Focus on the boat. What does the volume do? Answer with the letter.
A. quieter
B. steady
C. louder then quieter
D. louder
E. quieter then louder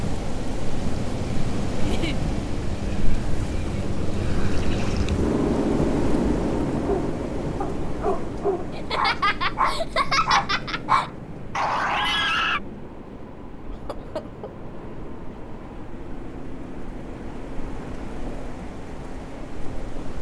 A.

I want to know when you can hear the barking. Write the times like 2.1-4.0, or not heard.
6.7-12.6.